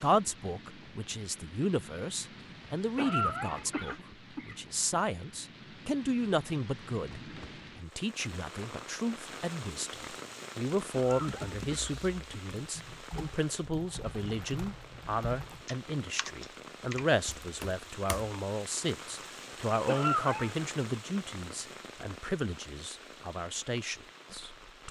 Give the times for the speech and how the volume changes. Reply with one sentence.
You can hear the speech from 0.0 to 24.8 s, at a steady volume.